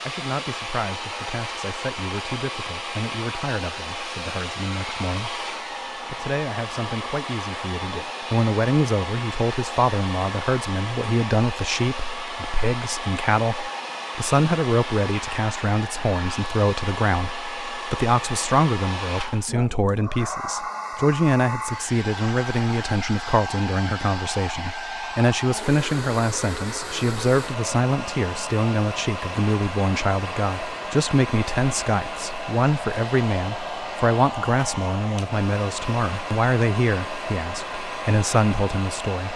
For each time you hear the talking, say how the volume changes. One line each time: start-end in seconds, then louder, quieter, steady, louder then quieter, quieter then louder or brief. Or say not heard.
0.1-39.3 louder.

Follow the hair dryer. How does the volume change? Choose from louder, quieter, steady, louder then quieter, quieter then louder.
steady.